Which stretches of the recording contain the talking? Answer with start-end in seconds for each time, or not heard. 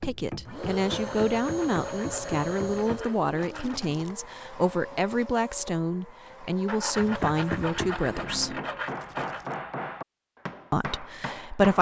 0.0-8.6, 10.7-11.7.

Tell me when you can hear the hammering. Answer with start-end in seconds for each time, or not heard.
0.0-3.0, 7.0-11.7.